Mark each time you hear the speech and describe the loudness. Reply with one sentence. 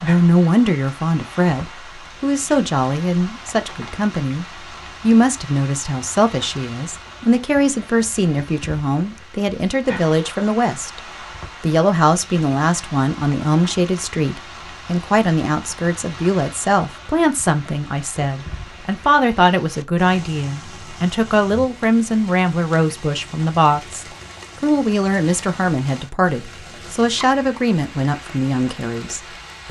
The speech can be heard from 0.0 to 11.0 s, at a steady volume; and from 11.6 to 29.6 s, at a steady volume.